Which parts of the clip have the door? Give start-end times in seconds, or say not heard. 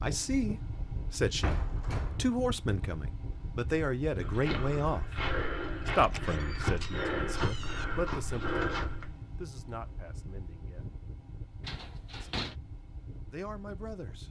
1.4-2.3, 6.0-7.8, 11.7-12.6.